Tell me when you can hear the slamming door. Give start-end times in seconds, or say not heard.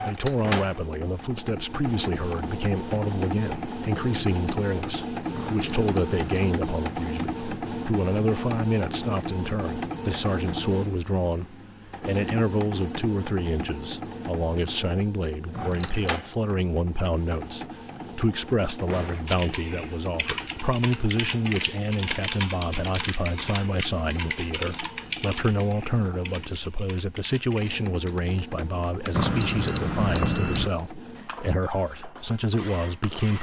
0.4-0.8, 18.9-19.3.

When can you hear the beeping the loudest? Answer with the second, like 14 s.
30 s.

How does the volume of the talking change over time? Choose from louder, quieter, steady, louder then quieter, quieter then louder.
steady.